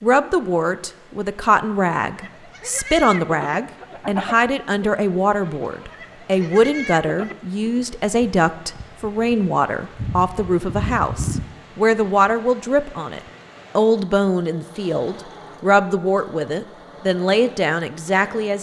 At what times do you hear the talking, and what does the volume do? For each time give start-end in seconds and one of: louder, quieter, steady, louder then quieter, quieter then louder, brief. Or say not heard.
0.0-18.5 steady.